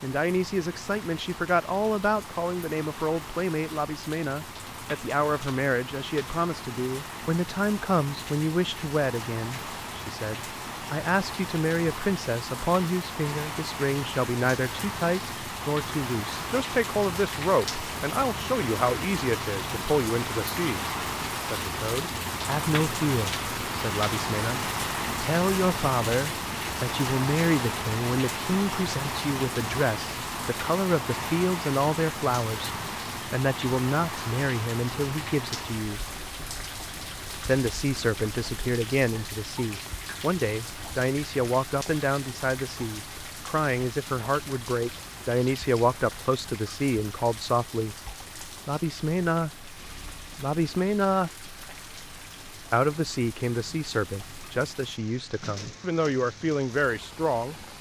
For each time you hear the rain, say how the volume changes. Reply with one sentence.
The rain can be heard from 0.0 to 57.7 s, getting louder then quieter.